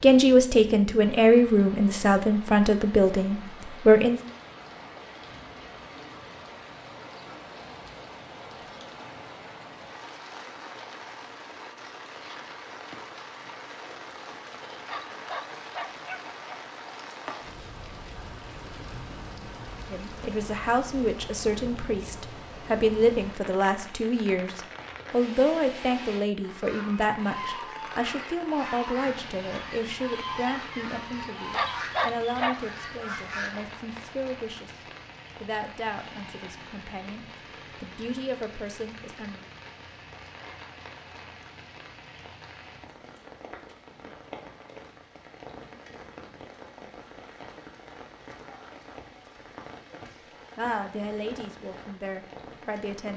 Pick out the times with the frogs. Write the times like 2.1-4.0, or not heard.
not heard.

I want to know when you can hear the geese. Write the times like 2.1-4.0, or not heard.
26.4-33.6.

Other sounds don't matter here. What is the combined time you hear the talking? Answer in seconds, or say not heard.
26 s.